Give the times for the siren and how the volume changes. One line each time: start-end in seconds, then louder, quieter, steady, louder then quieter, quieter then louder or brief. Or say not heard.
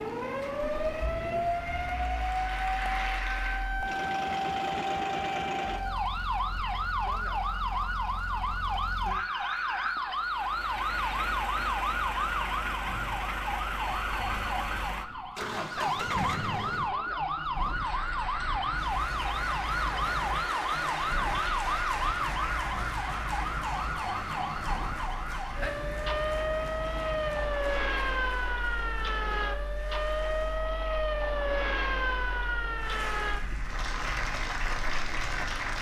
0.0-35.7 steady.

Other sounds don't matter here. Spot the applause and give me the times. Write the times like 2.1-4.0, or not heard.
0.0-3.8, 17.6-30.7, 32.8-35.7.